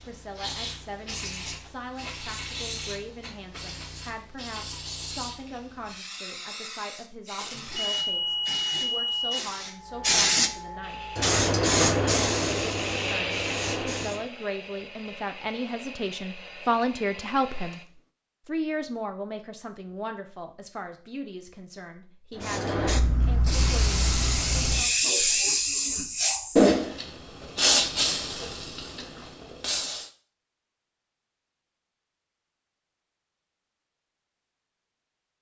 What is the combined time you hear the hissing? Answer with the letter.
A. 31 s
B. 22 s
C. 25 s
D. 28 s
B.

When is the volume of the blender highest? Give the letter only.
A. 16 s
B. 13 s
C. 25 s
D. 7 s
B.